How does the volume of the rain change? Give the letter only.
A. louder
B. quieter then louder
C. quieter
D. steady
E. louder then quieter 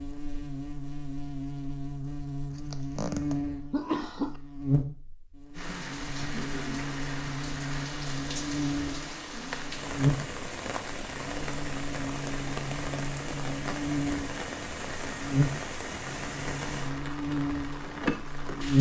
D.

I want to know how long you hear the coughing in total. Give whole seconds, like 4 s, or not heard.
2 s.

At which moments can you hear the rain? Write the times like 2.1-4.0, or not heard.
5.5-18.7.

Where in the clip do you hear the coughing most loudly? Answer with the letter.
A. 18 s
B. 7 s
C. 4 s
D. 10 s
C.